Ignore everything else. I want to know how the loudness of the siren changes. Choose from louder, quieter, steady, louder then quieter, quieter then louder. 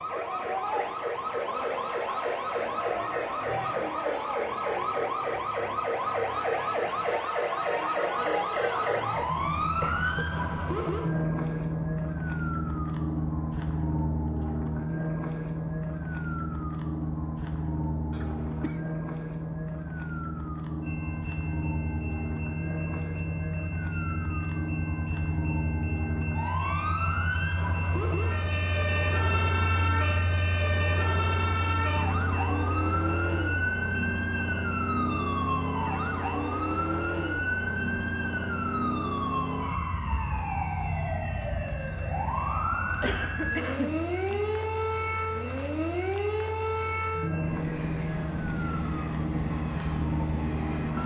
steady.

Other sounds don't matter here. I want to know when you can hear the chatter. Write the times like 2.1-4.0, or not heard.
not heard.